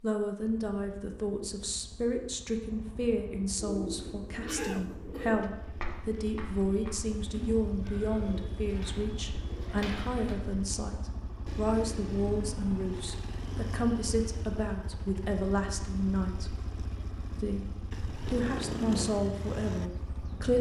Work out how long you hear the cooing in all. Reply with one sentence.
The cooing can be heard for 7 seconds in total.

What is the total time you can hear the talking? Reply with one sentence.
You can hear the talking for 20 seconds altogether.